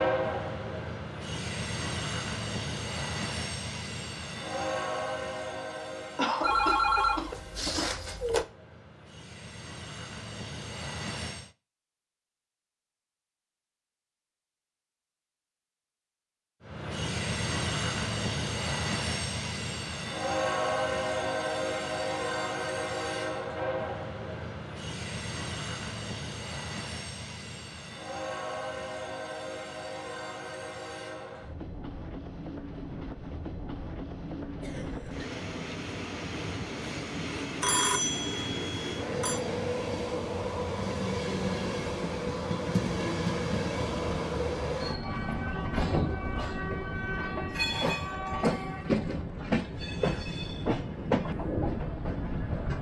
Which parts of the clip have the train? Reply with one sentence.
The train can be heard from 0.0 to 11.5 s and from 16.6 to 52.7 s.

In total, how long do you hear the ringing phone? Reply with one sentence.
The ringing phone can be heard for 4 seconds in total.